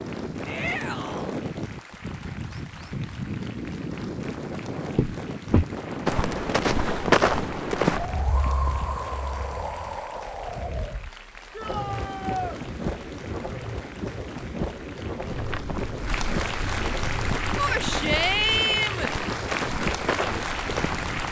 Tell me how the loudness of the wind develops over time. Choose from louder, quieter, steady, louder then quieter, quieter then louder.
steady.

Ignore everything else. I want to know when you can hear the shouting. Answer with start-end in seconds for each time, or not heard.
0.5-1.3, 11.5-12.6, 17.6-19.1.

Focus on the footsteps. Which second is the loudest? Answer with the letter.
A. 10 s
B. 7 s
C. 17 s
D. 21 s
B.